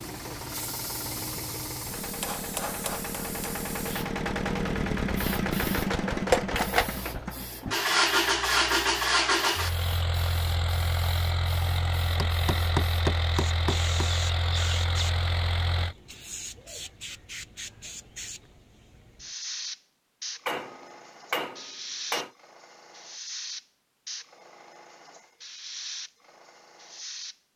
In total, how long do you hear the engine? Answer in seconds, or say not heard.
16 s.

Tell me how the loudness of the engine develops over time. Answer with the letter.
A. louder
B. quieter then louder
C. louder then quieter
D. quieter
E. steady
C.